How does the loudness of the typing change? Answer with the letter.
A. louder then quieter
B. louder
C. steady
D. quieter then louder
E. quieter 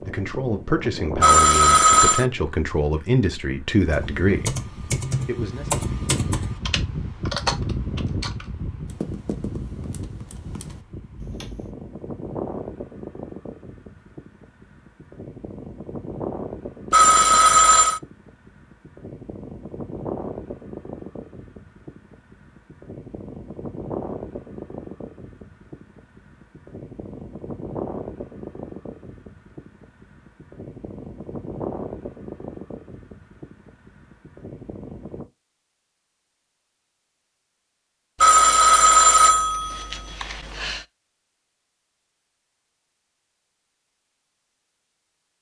E.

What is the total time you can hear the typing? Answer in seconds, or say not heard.
8 s.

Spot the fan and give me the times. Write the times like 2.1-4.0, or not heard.
0.0-35.3.